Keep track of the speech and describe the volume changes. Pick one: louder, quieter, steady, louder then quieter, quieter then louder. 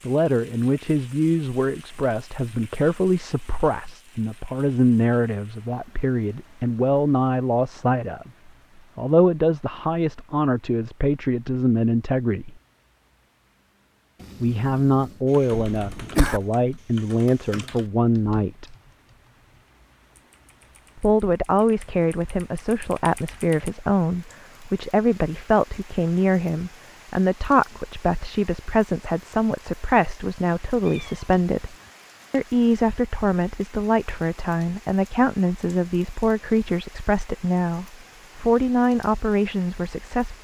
steady.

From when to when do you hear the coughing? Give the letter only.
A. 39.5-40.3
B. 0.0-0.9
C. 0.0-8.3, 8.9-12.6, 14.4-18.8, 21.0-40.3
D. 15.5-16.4
D.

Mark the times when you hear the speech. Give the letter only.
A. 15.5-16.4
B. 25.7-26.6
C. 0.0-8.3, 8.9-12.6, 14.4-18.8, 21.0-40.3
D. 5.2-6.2
C.